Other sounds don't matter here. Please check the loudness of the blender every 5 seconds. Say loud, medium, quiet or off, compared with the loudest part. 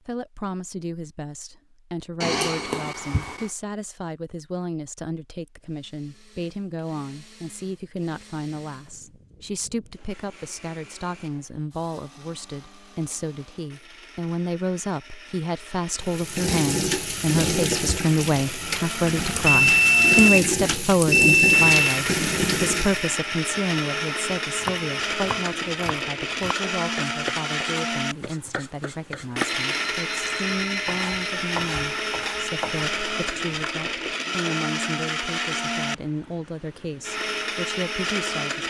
off, quiet, quiet, medium, loud, loud, loud, loud.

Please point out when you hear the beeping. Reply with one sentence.
The beeping can be heard from 2.2 to 3.5 s, from 19.3 to 21.8 s and from 29.6 to 31.2 s.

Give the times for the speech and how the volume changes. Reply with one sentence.
The speech can be heard from 0.1 to 38.6 s, getting louder then quieter.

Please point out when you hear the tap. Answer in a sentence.
You can hear the tap from 16.0 to 23.1 s.